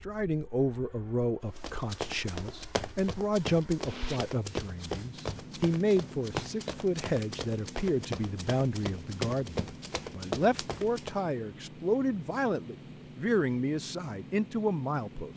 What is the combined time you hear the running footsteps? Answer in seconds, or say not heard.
10 s.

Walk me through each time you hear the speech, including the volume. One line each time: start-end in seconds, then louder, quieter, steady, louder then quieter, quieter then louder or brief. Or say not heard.
0.1-15.3 steady.